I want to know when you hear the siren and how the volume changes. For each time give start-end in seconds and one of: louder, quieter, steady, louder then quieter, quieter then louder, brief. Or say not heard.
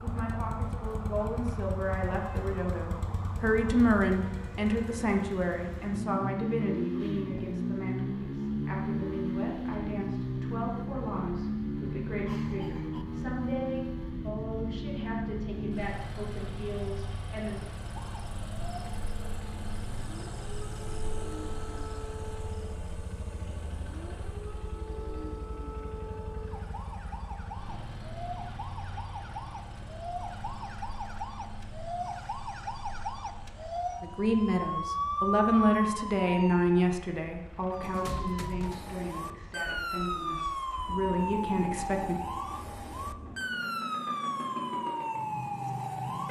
0.0-5.2 steady
17.9-46.2 louder.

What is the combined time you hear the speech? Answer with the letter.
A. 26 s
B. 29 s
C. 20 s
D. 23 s
A.